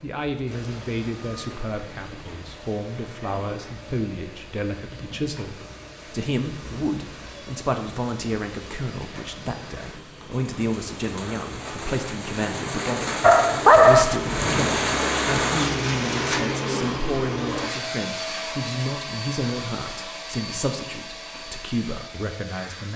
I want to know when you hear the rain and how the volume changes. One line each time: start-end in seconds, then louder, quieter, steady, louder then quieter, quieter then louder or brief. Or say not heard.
0.0-16.4 louder.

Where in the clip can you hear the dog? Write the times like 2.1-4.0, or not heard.
13.2-14.3.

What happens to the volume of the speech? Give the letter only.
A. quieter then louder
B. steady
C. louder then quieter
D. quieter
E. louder
B.